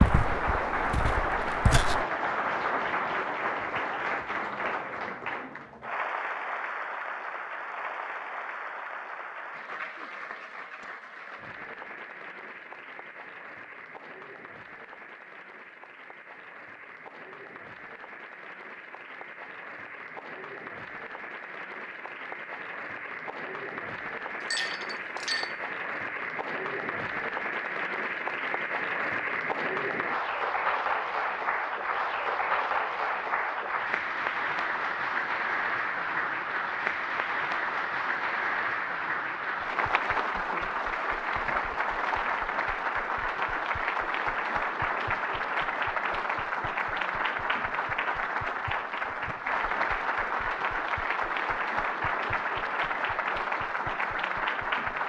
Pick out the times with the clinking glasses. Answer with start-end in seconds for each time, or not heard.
24.4-25.6.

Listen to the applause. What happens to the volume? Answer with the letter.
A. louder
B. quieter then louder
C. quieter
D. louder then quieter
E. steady
B.